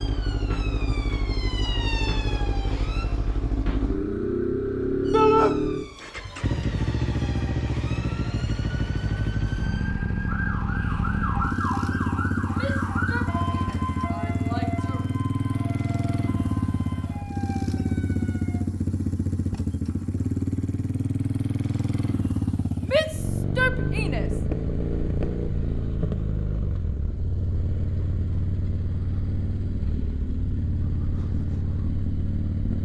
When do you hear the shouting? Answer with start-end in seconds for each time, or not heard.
5.1-5.5, 12.5-15.0, 22.8-24.2.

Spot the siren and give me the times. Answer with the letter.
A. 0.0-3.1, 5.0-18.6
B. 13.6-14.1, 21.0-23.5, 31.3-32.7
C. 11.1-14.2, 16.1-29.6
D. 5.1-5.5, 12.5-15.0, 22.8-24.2
A.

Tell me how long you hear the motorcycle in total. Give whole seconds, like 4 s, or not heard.
33 s.